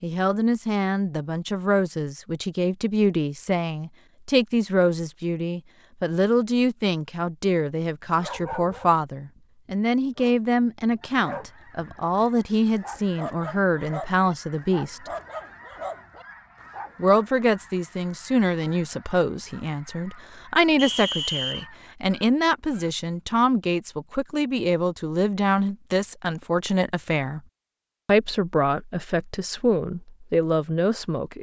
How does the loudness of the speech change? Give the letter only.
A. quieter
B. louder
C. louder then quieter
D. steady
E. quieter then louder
D.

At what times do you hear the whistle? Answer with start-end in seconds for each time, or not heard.
20.8-21.6.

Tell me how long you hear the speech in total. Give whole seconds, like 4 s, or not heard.
29 s.